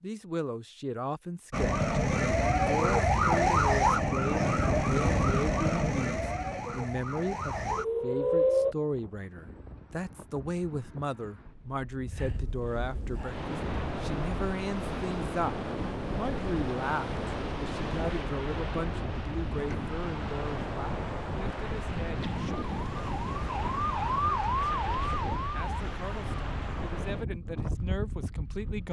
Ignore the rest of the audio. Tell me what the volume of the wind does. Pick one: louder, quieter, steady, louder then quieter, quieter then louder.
louder.